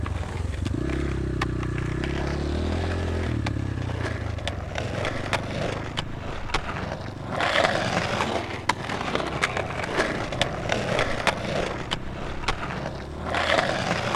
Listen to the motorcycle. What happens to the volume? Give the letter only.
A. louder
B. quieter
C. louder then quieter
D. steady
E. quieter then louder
B.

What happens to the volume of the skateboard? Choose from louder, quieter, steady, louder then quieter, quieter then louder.
louder.